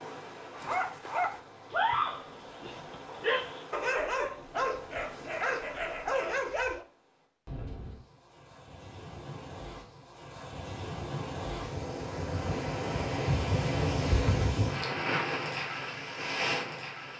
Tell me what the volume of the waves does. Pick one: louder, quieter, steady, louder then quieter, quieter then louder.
louder.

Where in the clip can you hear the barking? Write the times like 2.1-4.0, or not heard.
0.5-6.8.